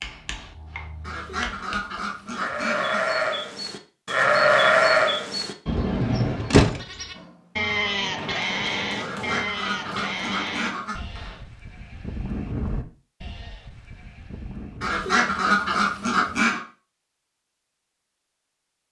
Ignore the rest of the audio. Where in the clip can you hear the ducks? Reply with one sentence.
The ducks can be heard from 1.0 to 3.0 s, from 8.9 to 11.0 s and from 14.8 to 16.6 s.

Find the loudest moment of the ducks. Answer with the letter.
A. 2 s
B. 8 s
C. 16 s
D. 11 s
C.